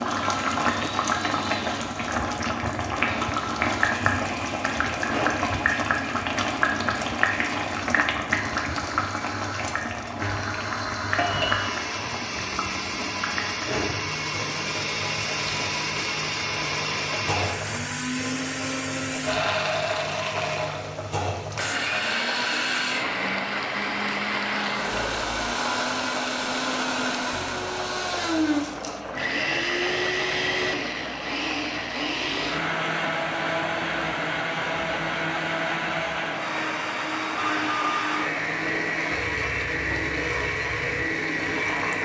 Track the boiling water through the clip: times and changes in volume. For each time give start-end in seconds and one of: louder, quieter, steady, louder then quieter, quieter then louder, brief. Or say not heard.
0.0-42.0 quieter.